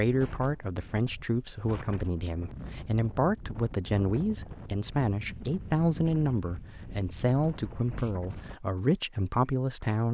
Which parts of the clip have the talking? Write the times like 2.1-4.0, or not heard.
0.0-10.0.